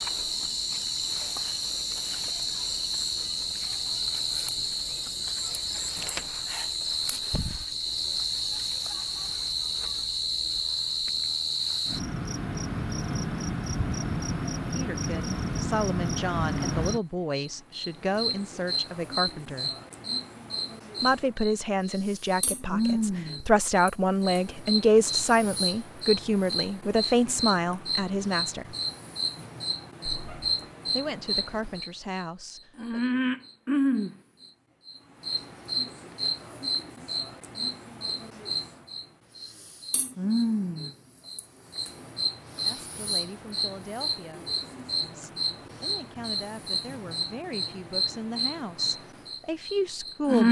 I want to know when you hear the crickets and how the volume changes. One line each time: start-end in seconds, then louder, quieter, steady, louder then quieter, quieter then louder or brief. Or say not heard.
0.0-50.4 steady.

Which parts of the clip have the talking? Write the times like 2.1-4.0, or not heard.
14.8-19.7, 21.0-28.8, 30.9-33.0, 42.6-50.4.